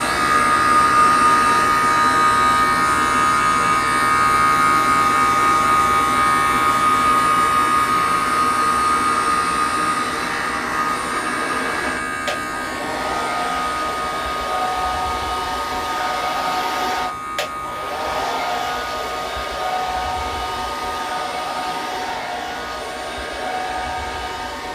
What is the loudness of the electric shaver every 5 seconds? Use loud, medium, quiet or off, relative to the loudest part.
loud, loud, medium, quiet, quiet.